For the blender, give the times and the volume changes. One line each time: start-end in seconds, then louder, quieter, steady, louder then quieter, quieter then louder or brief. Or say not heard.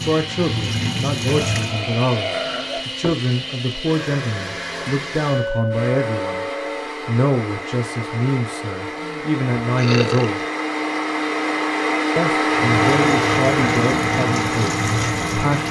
0.0-15.6 louder.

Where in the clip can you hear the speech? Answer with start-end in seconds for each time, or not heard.
0.1-6.5, 7.0-10.4, 12.2-15.6.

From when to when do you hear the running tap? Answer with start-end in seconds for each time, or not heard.
0.0-1.8, 12.6-15.6.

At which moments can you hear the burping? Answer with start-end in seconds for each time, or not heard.
1.2-3.0, 9.0-10.4.